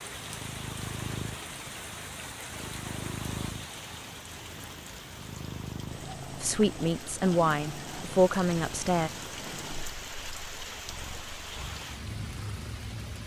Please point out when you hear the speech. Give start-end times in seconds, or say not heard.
6.4-9.1.